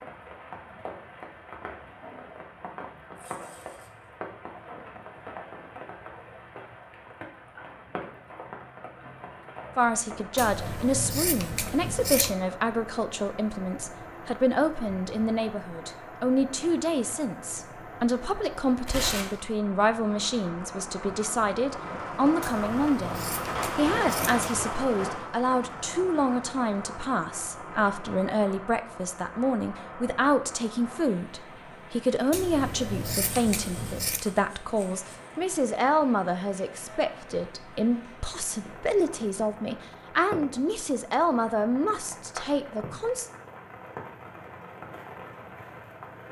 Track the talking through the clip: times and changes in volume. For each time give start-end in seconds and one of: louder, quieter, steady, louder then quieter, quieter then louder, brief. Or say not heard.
9.8-43.2 steady.